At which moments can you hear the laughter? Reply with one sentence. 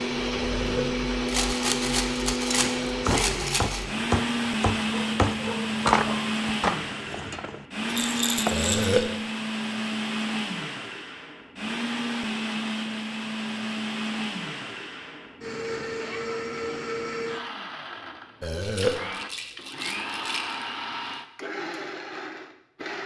The laughter can't be heard in this clip.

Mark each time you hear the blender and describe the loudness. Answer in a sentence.
You can hear the blender from 0.0 to 23.0 s, getting quieter.